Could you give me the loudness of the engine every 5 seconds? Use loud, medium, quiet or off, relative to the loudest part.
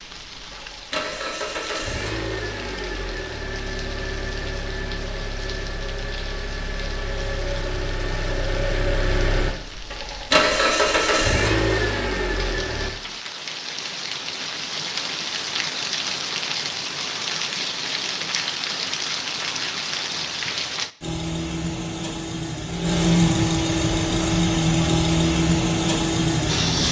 medium, medium, loud, off, loud, loud.